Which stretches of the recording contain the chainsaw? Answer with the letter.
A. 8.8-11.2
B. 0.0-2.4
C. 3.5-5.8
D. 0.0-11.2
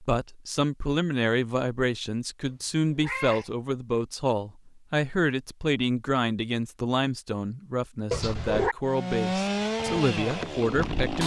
A.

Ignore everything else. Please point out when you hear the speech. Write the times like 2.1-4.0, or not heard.
0.0-11.2.